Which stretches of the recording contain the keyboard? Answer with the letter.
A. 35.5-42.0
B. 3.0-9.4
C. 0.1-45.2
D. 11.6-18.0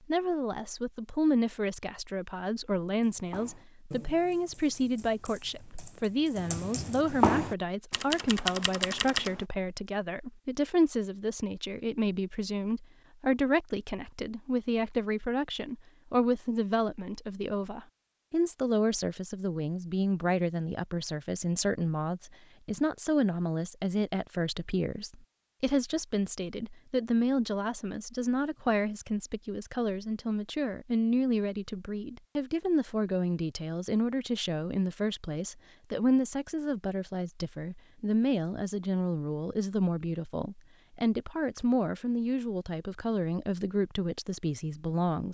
B.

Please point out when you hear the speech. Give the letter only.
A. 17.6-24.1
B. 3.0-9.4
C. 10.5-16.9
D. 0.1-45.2
D.